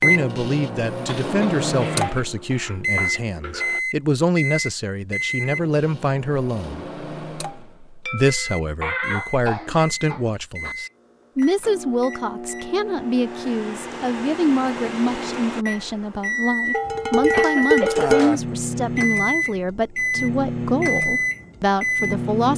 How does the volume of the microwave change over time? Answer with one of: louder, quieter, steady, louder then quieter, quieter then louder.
quieter then louder.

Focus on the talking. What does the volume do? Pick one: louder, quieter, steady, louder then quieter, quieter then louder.
steady.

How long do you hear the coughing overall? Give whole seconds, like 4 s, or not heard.
4 s.